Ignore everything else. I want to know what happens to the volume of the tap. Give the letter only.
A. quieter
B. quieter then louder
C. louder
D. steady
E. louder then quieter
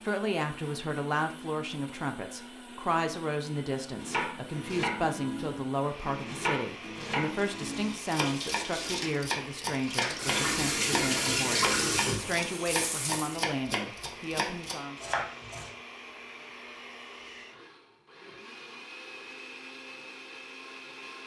E.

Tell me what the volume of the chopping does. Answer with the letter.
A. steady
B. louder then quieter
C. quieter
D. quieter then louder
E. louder
A.